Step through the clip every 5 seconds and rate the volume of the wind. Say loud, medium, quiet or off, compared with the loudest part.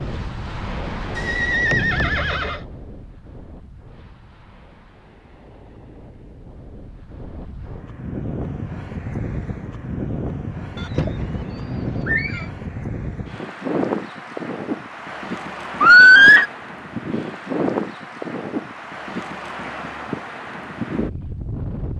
medium, medium, loud, loud, loud.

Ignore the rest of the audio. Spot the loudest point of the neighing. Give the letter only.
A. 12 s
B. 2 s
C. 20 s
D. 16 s
D.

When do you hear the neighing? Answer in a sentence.
You can hear the neighing from 1.1 to 2.6 s, from 10.8 to 12.4 s and from 15.8 to 16.4 s.